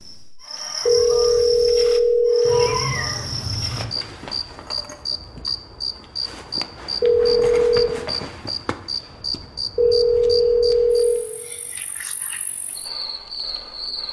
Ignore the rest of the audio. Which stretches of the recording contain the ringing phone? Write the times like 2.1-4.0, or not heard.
0.8-2.7, 7.0-7.9, 9.8-11.3.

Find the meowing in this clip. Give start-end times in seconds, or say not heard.
2.5-3.9.